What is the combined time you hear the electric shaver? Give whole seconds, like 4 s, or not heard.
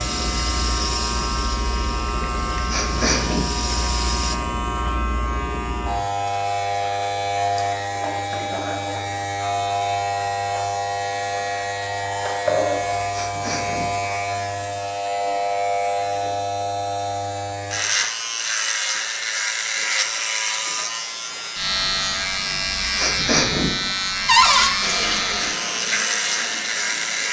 27 s.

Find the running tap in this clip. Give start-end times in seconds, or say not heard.
0.0-4.3, 24.8-27.2.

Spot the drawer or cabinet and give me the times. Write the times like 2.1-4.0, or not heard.
24.2-24.7.